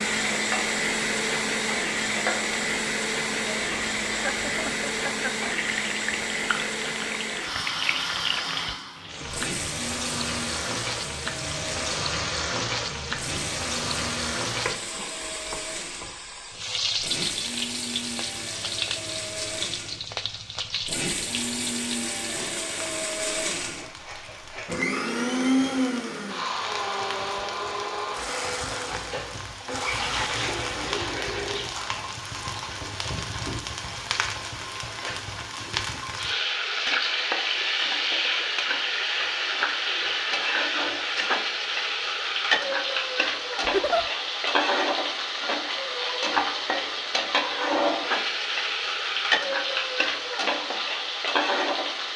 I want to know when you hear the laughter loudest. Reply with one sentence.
The loudest moment of the laughter is at 44 seconds.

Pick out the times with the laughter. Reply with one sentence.
You can hear the laughter from 4.1 to 5.3 s and from 43.6 to 44.0 s.